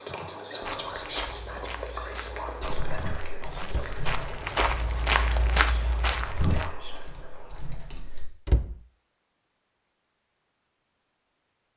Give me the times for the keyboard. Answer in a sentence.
You can hear the keyboard from 2.6 to 4.3 s and from 6.2 to 8.2 s.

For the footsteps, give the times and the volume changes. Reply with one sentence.
The footsteps can be heard from 0.6 to 6.7 s, getting louder.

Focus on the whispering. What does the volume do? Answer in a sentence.
The loudness of the whispering goes down.